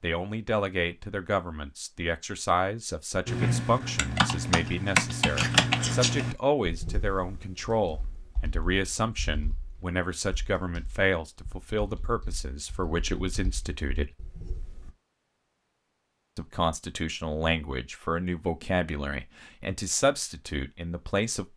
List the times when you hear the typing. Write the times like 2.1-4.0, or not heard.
3.2-14.9.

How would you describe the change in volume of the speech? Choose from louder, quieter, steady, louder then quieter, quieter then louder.
steady.